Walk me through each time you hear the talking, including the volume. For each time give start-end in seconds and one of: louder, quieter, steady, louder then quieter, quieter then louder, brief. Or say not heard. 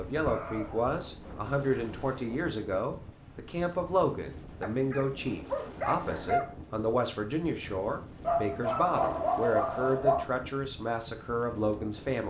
0.0-12.2 steady.